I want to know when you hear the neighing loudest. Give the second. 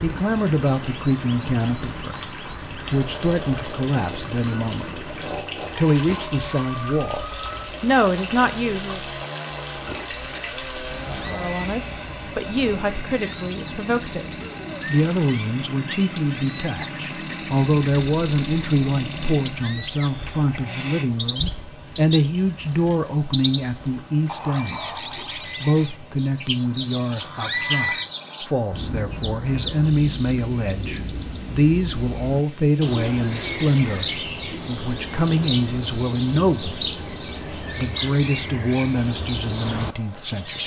28 s.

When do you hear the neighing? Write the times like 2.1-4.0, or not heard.
11.1-11.8, 27.1-28.1.